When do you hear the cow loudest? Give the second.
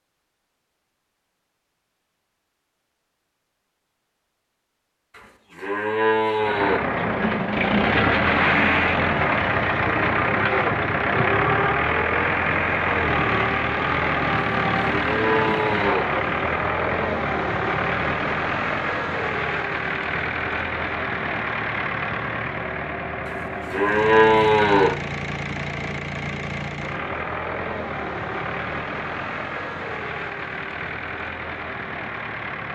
24 s.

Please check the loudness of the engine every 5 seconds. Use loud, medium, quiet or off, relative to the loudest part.
off, loud, loud, loud, medium, medium, medium.